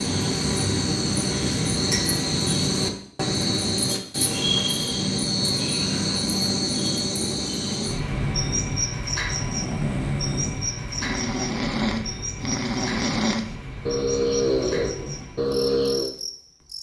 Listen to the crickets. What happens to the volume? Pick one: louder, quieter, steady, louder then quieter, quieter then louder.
quieter.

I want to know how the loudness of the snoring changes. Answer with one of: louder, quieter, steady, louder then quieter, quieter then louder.
louder.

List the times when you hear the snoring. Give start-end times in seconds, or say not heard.
8.0-16.1.